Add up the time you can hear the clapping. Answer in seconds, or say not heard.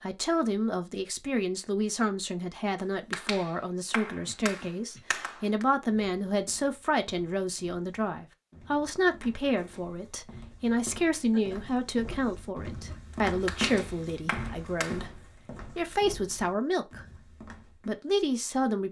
5 s.